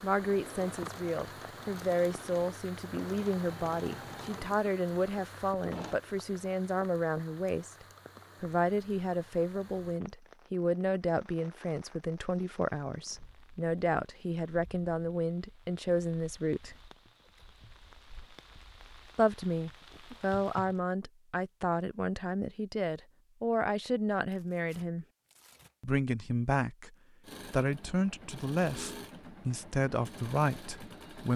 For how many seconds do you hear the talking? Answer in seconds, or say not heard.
28 s.